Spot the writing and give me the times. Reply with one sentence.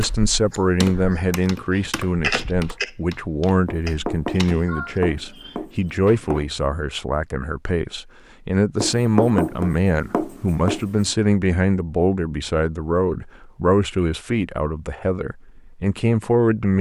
You can hear the writing from 3.6 to 6.5 s and from 8.8 to 11.1 s.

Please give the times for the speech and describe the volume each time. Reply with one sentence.
You can hear the speech from 0.0 to 16.7 s, at a steady volume.